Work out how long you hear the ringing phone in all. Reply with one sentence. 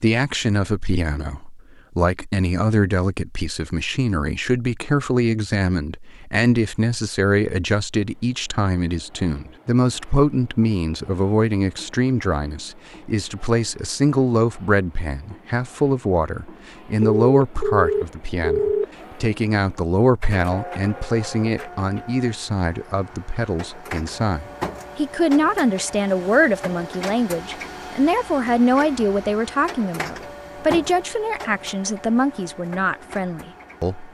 You can hear the ringing phone for 2 seconds altogether.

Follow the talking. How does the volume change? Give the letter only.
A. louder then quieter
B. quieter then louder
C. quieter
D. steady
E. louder
D.